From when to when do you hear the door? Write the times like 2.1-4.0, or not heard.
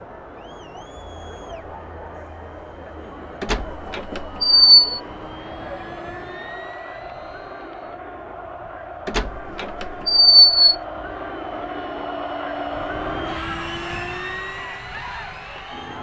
3.4-5.0, 9.1-10.8.